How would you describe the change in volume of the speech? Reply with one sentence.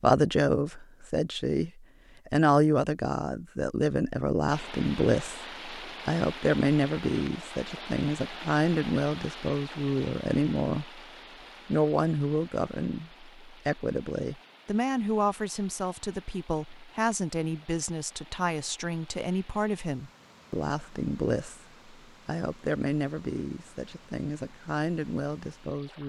The volume of the speech goes down.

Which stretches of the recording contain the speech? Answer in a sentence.
The speech can be heard from 0.0 to 11.0 s and from 11.7 to 26.0 s.